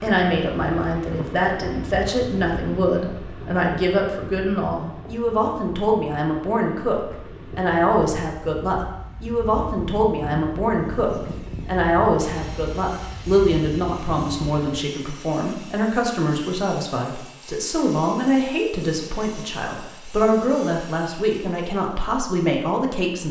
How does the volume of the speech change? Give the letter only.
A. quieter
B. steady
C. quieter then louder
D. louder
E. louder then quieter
B.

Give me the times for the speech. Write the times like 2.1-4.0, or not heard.
0.0-23.2.